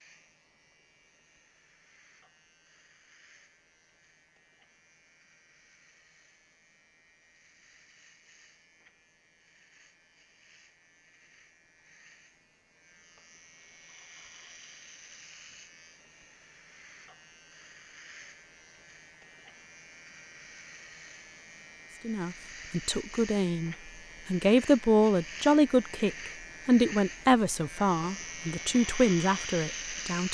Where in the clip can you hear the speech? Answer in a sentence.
The speech can be heard from 22.1 to 30.2 s.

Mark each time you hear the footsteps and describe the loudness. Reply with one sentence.
You can't hear the footsteps here.